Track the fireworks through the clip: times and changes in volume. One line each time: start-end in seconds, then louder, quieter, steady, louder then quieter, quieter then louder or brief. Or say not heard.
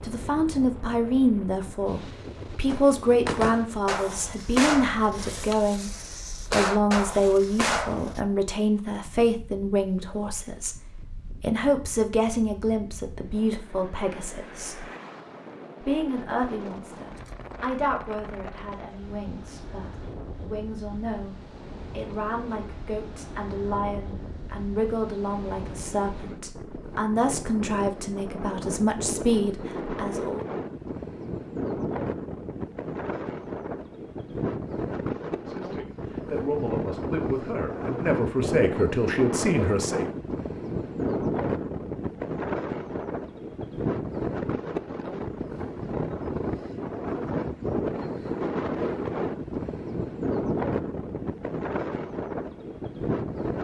2.6-8.2 quieter then louder.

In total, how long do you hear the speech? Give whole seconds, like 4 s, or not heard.
34 s.